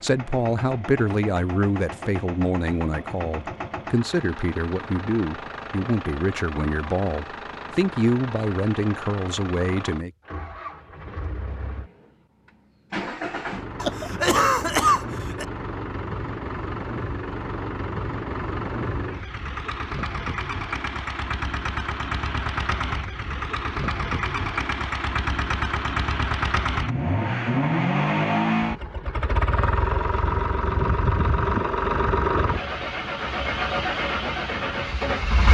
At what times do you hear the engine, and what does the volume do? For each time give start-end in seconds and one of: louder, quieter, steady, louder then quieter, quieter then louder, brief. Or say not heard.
0.0-35.4 louder.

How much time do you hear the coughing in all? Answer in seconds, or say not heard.
2 s.